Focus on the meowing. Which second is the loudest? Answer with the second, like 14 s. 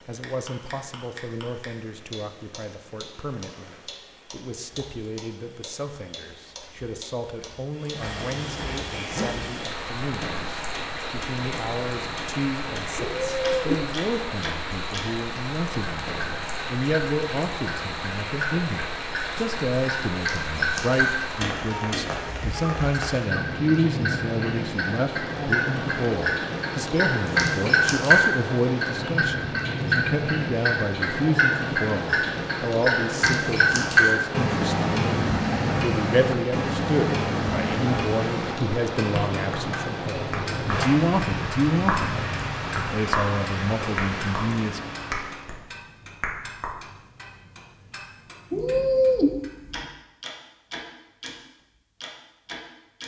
49 s.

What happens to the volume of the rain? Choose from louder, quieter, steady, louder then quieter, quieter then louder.
louder.